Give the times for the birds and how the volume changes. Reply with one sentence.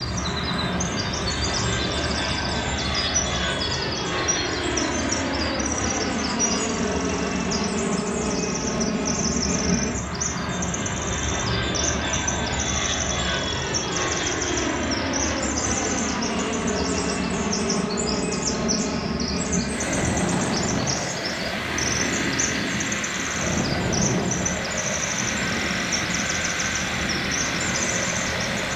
The birds can be heard from 0.0 to 28.7 s, at a steady volume.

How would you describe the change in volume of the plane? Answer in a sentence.
The loudness of the plane stays about the same.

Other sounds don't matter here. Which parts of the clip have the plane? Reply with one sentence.
The plane can be heard from 0.0 to 28.7 s.